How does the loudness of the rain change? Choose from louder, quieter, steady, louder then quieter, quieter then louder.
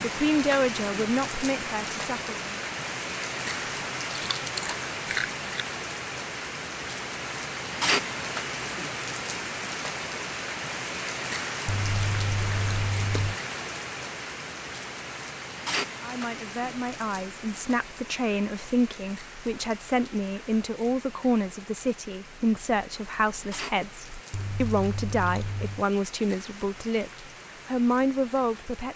quieter.